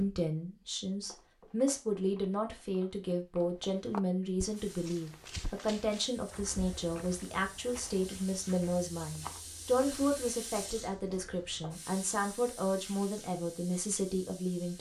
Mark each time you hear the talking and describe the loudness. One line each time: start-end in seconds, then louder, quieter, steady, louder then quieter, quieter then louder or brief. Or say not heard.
0.0-14.7 steady.